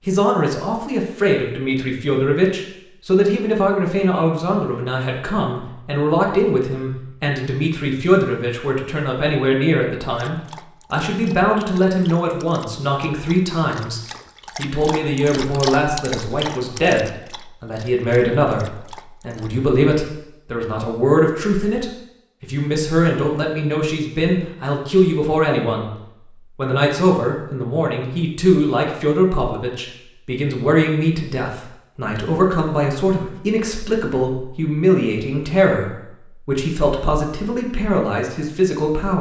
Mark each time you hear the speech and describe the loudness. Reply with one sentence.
You can hear the speech from 0.1 to 25.9 s, at a steady volume; and from 26.6 to 39.1 s, at a steady volume.